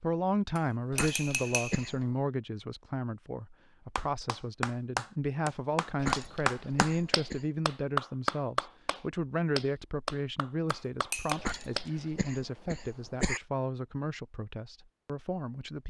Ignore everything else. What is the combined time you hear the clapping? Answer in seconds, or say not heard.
8 s.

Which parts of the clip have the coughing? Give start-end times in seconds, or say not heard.
0.9-2.1, 6.0-7.5, 11.3-13.4.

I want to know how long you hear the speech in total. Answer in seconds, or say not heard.
16 s.